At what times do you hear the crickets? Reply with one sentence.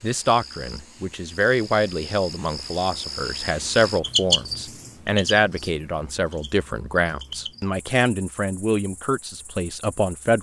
The crickets can be heard from 0.0 to 10.3 s.